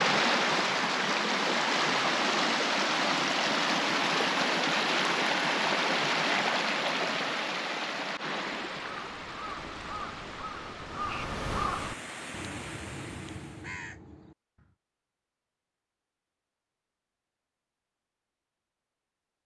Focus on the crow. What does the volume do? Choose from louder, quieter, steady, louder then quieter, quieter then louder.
louder then quieter.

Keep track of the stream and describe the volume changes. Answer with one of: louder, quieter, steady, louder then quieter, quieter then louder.
quieter.